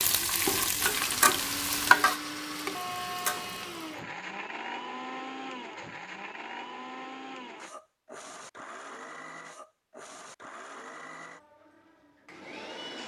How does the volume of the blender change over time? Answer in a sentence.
The loudness of the blender goes down.